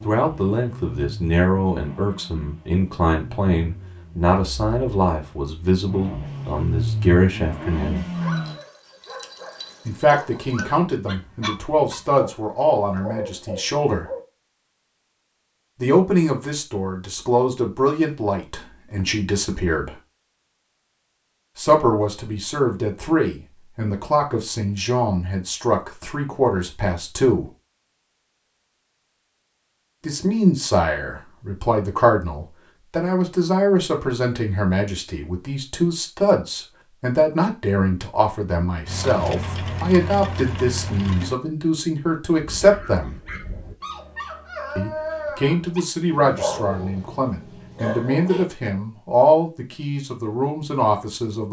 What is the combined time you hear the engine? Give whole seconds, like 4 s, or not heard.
11 s.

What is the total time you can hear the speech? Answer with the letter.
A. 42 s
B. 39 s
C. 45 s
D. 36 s
A.